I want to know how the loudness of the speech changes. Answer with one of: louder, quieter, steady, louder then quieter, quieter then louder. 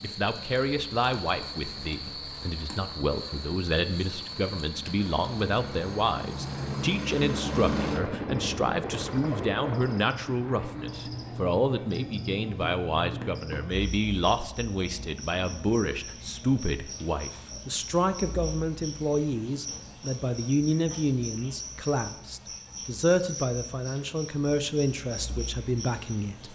steady.